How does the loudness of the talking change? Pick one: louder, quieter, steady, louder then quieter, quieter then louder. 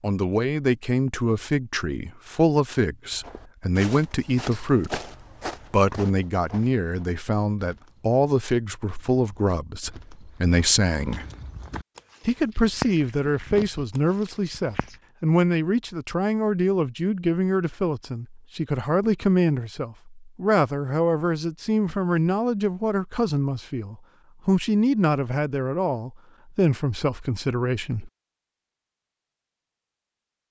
steady.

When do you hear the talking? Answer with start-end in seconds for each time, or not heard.
0.0-5.0, 5.7-11.2, 12.2-28.1.